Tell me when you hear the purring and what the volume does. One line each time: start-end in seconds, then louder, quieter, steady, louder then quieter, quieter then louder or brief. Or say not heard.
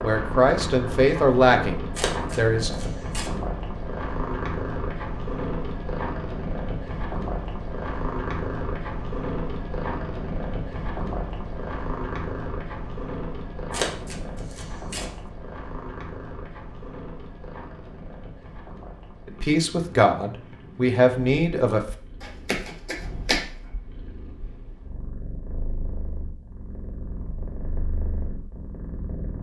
0.0-29.3 quieter.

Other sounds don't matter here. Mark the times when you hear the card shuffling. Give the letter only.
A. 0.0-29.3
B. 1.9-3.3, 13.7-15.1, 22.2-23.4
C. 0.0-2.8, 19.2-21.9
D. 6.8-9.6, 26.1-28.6
B.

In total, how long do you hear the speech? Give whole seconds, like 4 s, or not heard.
5 s.